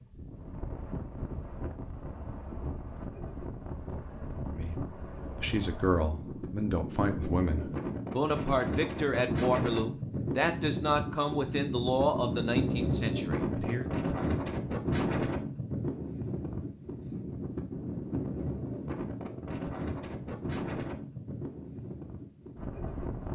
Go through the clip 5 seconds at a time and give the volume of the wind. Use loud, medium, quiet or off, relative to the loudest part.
medium, loud, loud, loud, medium.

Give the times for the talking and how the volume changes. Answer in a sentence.
You can hear the talking from 4.5 to 13.8 s, at a steady volume.